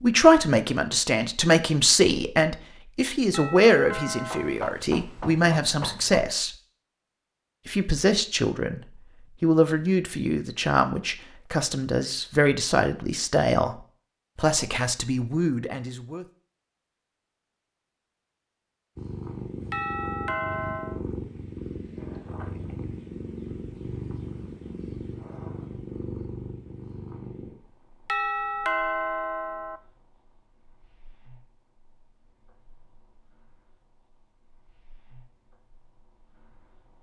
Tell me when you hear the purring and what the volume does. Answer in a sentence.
You can hear the purring from 18.9 to 36.9 s, getting quieter.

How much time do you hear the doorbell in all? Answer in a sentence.
The doorbell can be heard for 4 seconds in total.